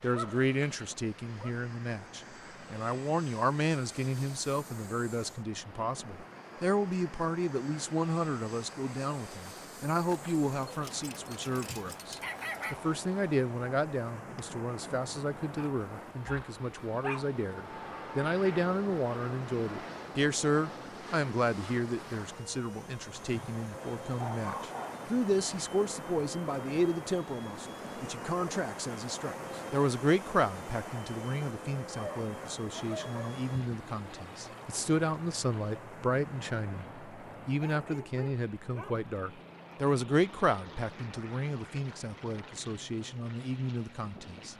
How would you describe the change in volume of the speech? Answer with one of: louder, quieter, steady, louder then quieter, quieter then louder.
steady.